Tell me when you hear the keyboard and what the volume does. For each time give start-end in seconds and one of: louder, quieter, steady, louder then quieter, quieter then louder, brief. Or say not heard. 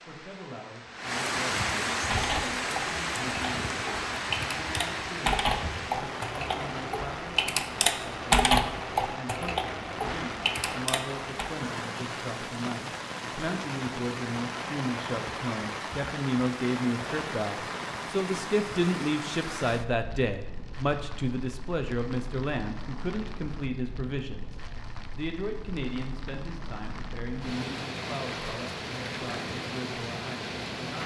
2.0-11.5 louder then quieter.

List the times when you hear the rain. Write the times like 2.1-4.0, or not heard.
0.0-31.0.